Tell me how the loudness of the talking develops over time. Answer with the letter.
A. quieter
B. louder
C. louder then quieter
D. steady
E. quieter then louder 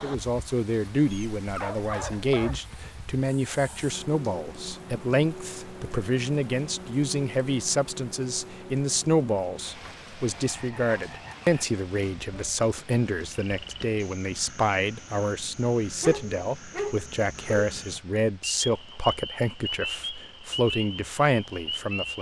D.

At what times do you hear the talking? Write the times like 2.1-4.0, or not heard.
0.0-22.1.